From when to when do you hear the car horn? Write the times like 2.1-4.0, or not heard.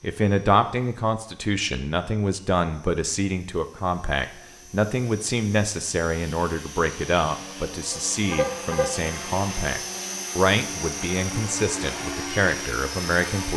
7.9-8.9.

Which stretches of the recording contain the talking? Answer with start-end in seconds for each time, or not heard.
0.0-13.5.